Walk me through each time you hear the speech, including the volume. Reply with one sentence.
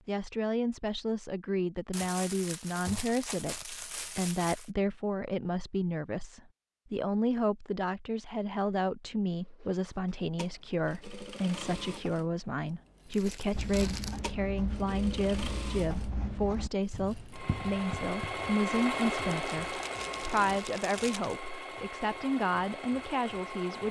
You can hear the speech from 0.1 to 23.8 s, at a steady volume.